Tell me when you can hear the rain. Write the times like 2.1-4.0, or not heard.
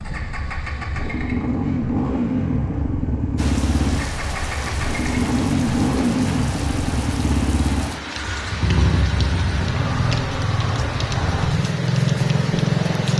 3.4-13.1.